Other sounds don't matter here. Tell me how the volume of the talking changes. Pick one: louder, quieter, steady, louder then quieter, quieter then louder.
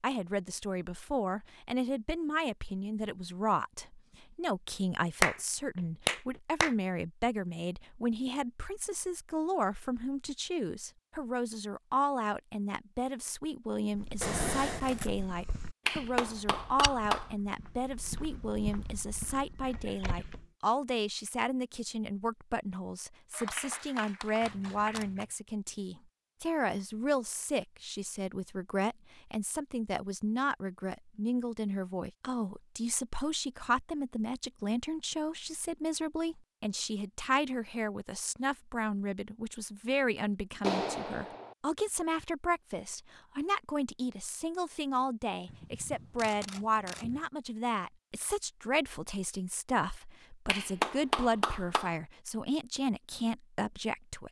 steady.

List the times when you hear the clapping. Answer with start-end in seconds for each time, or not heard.
5.2-6.8, 15.8-17.3, 23.3-25.2, 40.6-41.5, 50.5-52.0.